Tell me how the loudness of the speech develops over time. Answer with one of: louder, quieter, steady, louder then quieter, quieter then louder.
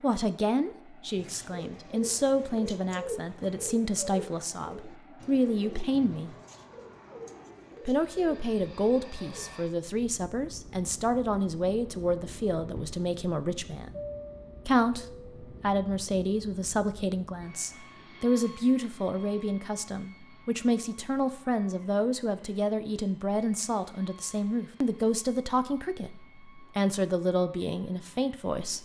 steady.